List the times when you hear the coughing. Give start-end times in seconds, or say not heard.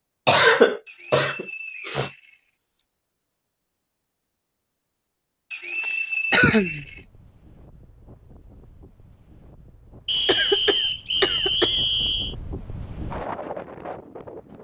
0.2-2.1, 5.8-6.8, 10.2-11.8.